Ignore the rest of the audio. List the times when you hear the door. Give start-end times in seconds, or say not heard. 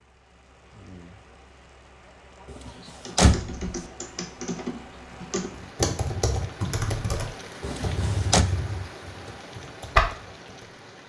2.5-3.7, 7.6-8.4.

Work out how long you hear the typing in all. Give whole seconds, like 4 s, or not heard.
8 s.